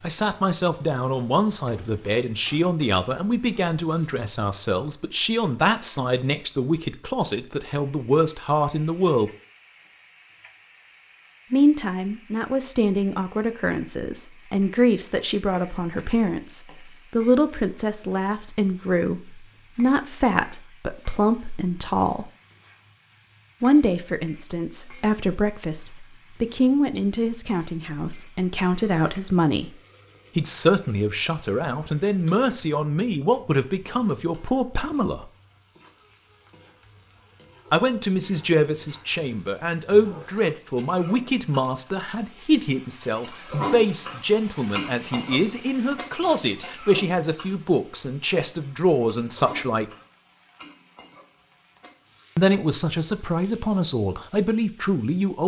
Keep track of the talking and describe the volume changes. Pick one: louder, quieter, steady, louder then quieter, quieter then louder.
steady.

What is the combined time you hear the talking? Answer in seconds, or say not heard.
46 s.